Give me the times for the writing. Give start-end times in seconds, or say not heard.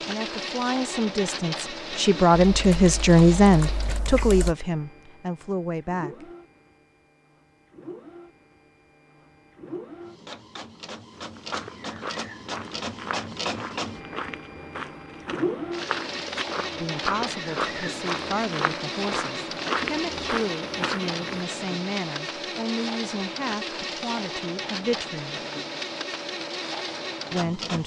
not heard.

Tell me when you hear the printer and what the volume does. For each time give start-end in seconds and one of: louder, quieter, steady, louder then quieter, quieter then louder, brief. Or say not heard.
0.0-27.8 quieter then louder.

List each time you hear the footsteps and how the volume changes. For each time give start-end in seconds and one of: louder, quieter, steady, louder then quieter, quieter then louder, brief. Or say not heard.
11.1-21.4 louder.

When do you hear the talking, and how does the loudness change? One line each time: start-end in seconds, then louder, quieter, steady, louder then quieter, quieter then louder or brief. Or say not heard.
0.1-6.3 louder then quieter
16.7-25.4 steady
27.3-27.8 brief.